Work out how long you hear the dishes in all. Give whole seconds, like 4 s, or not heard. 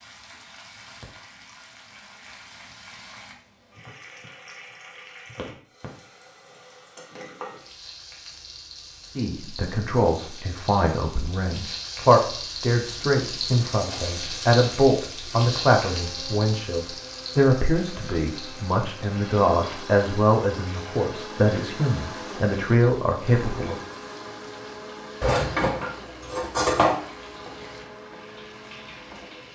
2 s.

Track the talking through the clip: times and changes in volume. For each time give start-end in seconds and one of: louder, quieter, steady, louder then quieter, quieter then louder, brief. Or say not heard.
9.2-23.8 steady.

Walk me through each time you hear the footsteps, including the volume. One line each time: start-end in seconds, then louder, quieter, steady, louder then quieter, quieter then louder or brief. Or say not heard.
not heard.